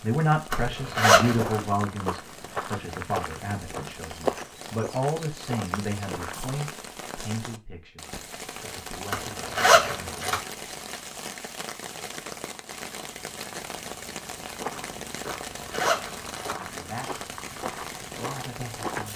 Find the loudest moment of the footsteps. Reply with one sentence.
The loudest moment of the footsteps is at 4 seconds.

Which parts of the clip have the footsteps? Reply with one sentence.
The footsteps can be heard from 1.2 to 6.7 s and from 14.2 to 19.1 s.